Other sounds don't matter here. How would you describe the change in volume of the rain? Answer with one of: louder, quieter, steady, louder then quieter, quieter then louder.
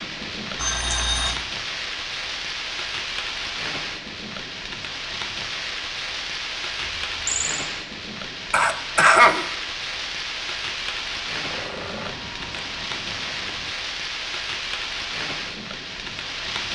steady.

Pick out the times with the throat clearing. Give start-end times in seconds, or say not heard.
0.9-1.4, 8.5-9.4.